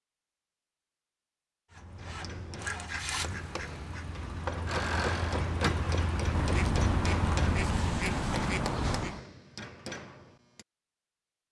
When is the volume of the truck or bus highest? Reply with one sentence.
The loudest moment of the truck or bus is at 5 seconds.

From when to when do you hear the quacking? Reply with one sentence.
The quacking can be heard from 2.6 to 4.0 s and from 6.3 to 9.2 s.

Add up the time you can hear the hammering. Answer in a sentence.
You can hear the hammering for 9 seconds altogether.